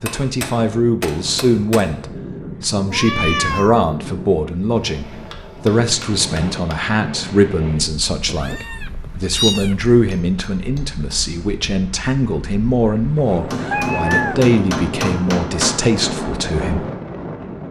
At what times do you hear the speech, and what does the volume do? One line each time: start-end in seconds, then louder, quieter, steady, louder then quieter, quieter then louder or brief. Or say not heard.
0.0-16.9 steady.